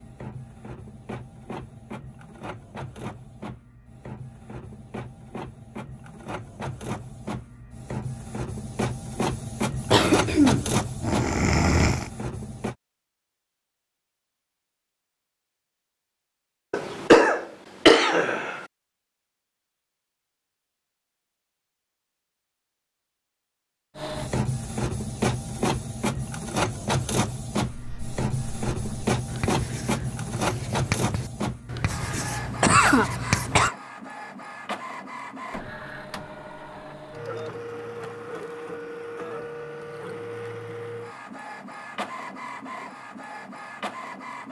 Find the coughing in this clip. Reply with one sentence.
The coughing can be heard from 9.9 to 12.1 s, from 16.7 to 18.6 s and from 32.1 to 33.8 s.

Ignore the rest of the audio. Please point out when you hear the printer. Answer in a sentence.
You can hear the printer from 0.0 to 12.8 s and from 23.9 to 44.4 s.